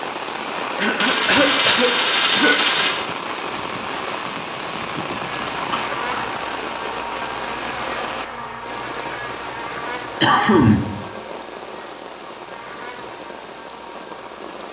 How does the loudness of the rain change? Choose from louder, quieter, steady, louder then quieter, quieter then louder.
quieter.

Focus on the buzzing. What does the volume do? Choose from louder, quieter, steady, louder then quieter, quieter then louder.
quieter.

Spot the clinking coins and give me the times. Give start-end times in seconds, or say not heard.
1.0-3.0.